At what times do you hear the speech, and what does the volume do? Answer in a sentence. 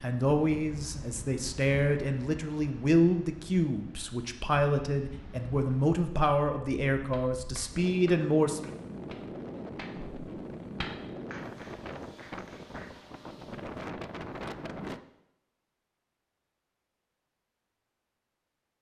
The speech can be heard from 0.0 to 8.7 s, at a steady volume.